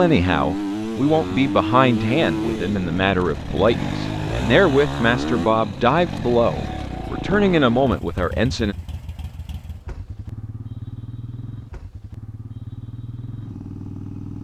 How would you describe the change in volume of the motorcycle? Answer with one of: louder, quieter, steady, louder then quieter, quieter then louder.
quieter.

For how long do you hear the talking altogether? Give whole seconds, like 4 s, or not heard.
9 s.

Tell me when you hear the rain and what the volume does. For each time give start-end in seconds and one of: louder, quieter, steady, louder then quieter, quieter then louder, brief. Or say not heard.
not heard.